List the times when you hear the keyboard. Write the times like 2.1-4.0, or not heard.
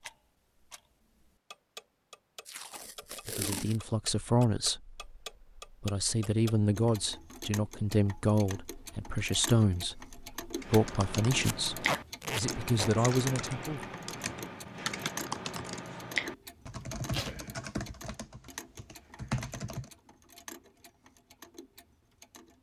10.5-19.9.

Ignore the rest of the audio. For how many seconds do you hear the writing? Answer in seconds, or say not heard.
not heard.